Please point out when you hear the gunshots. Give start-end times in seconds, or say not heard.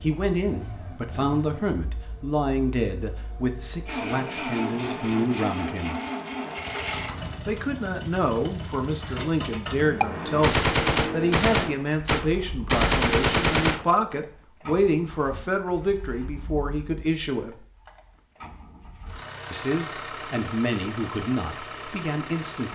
10.0-13.9.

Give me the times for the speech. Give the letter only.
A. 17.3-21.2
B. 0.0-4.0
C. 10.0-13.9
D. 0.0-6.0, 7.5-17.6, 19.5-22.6
D.